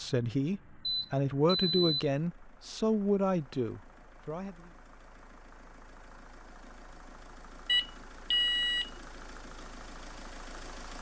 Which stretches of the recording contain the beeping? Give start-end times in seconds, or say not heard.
0.8-1.9, 7.7-8.9.